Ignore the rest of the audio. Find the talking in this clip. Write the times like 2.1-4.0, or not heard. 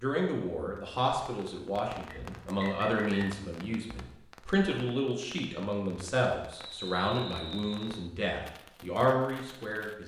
0.0-10.0.